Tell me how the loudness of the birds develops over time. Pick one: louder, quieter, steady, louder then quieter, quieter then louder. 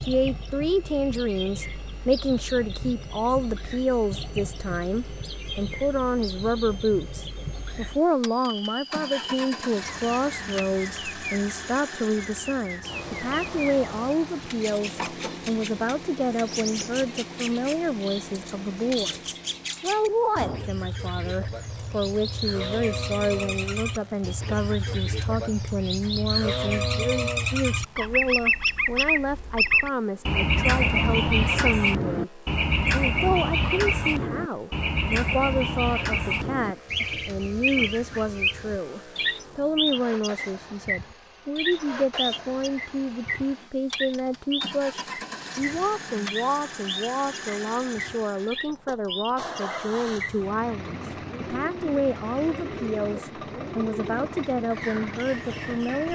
louder then quieter.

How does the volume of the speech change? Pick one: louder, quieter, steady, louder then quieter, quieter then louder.
steady.